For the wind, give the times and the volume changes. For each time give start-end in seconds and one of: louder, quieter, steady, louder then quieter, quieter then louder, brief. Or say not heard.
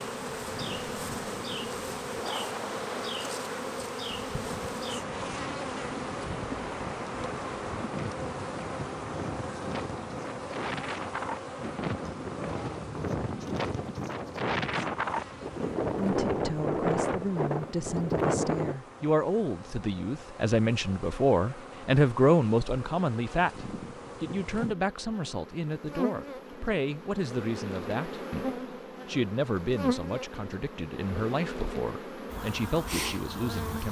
0.0-18.8 louder.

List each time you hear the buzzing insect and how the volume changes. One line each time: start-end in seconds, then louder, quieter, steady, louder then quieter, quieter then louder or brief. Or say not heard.
0.0-33.8 quieter then louder.